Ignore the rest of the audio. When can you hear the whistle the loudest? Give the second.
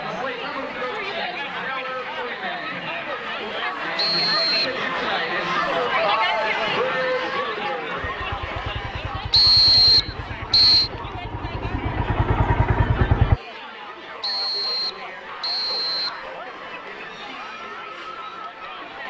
10 s.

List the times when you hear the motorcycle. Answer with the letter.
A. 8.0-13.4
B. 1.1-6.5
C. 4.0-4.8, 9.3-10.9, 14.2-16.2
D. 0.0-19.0
A.